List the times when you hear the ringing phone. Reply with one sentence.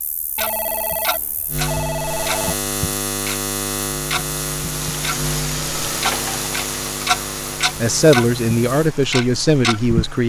You can hear the ringing phone from 0.3 to 2.6 s and from 5.5 to 6.5 s.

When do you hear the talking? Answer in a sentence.
The talking can be heard from 7.8 to 10.2 s.